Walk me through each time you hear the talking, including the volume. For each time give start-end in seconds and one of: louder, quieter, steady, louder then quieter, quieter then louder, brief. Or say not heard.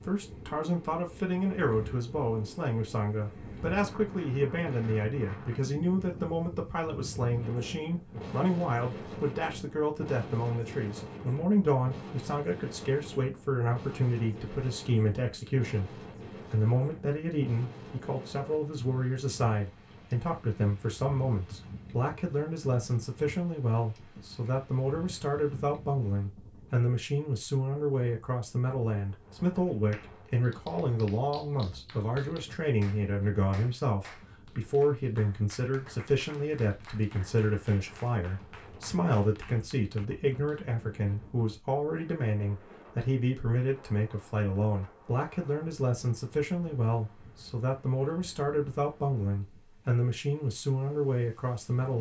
0.0-51.9 steady.